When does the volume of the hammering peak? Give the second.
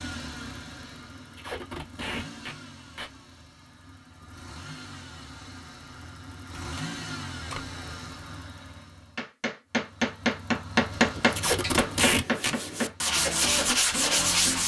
11 s.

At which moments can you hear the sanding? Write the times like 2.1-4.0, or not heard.
10.9-14.6.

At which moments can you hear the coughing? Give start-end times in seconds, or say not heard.
not heard.